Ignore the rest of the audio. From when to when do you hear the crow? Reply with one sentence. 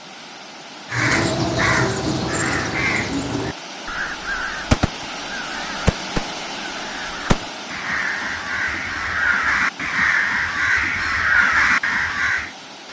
The crow can be heard from 0.9 to 12.5 s.